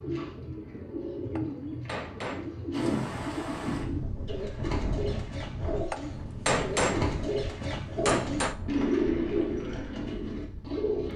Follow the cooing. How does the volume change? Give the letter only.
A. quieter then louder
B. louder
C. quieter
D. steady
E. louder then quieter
B.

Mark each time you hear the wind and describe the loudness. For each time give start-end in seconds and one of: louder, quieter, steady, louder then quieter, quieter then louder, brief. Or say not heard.
2.7-11.1 quieter.